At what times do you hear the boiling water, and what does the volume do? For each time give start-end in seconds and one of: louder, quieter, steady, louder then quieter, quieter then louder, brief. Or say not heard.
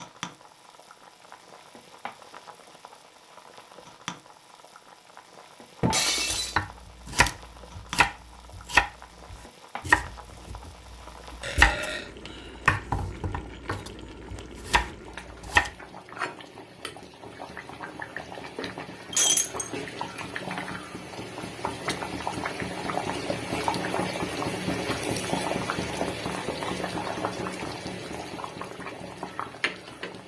0.0-30.2 louder.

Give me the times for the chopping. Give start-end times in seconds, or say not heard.
6.3-15.7.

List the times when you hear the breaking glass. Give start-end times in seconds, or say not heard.
5.8-6.5, 19.1-19.7.